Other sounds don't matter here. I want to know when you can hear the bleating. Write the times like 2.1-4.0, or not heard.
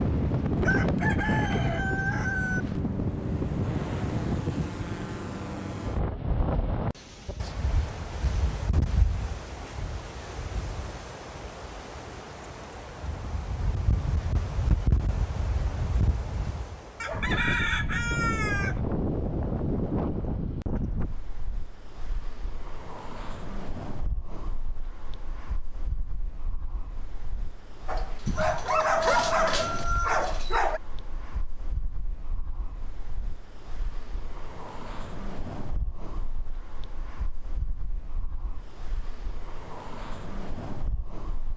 not heard.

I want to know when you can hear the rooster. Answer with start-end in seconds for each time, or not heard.
0.6-2.6, 17.0-18.8, 28.2-30.2.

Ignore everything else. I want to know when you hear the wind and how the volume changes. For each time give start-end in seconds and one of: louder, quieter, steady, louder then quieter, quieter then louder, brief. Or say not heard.
0.0-41.5 quieter.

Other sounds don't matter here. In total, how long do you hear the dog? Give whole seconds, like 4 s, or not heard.
3 s.